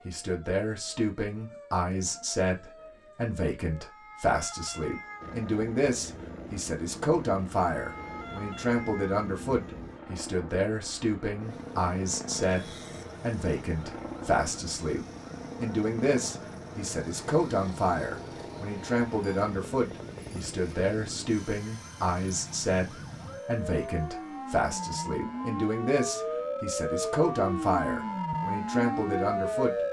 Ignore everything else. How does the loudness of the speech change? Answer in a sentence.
The volume of the speech stays about the same.